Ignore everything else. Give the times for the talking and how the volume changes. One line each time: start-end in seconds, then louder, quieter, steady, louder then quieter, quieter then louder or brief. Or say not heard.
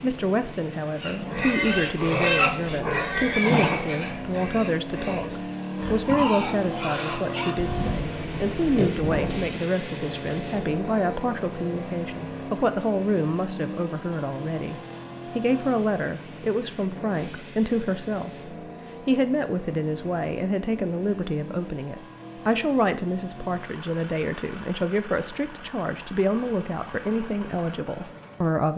0.0-28.7 steady.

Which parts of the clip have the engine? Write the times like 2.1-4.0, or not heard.
0.0-28.7.